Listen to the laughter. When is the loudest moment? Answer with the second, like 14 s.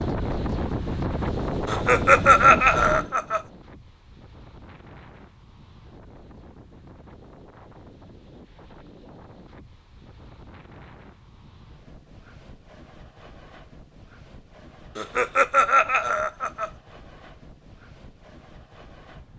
2 s.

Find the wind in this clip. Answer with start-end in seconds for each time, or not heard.
0.0-19.3.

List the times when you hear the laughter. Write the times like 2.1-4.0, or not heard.
1.6-3.4, 14.9-16.7.